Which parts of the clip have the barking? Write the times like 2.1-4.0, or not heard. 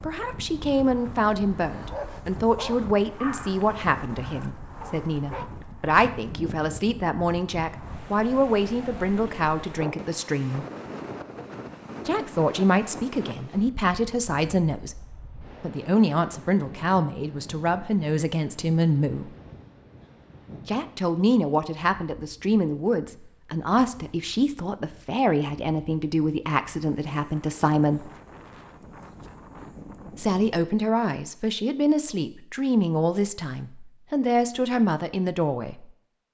1.9-5.5.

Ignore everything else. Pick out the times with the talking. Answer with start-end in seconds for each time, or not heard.
0.0-10.7, 12.1-19.4, 20.6-28.1, 30.1-35.9.